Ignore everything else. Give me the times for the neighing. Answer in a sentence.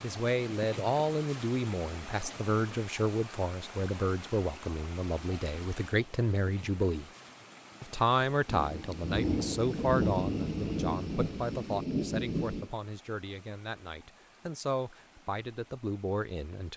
You can't hear the neighing here.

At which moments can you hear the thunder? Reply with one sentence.
The thunder can be heard from 8.4 to 12.7 s.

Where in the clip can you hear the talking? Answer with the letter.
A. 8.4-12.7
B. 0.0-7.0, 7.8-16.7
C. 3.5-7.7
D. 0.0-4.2
B.